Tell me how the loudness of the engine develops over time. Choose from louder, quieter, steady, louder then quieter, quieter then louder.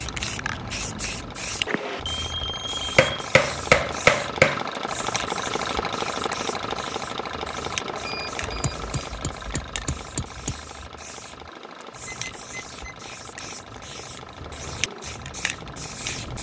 louder then quieter.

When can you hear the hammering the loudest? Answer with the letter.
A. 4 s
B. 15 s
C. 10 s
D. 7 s
A.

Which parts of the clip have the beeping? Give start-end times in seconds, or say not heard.
2.1-3.3, 7.8-8.9, 12.1-12.9.